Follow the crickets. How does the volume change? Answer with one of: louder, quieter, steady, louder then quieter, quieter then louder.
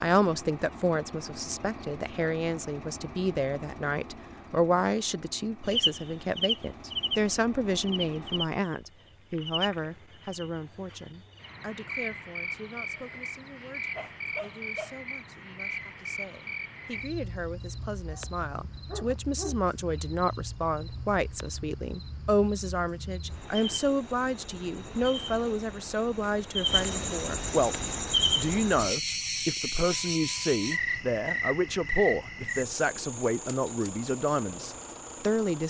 quieter then louder.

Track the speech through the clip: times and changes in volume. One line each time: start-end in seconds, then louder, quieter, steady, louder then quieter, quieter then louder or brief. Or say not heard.
0.0-27.8 quieter then louder
28.4-35.6 steady.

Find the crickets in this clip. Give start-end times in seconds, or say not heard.
5.7-35.6.